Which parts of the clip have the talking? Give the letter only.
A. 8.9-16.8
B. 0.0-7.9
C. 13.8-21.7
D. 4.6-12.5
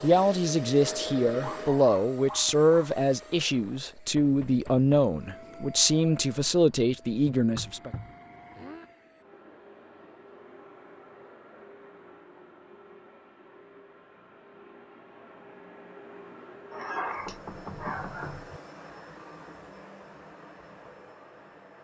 B.